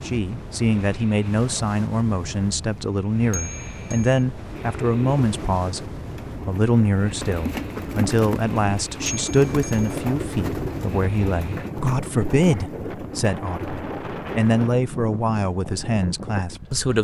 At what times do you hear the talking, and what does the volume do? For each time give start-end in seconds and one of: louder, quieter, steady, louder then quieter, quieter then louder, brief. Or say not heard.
0.0-16.9 steady.